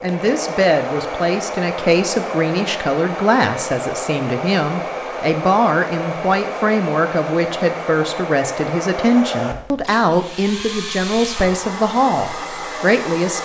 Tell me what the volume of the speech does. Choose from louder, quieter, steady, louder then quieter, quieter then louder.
steady.